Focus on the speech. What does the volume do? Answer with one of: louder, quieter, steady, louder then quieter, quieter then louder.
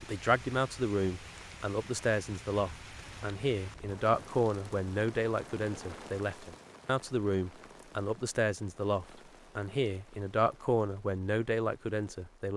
steady.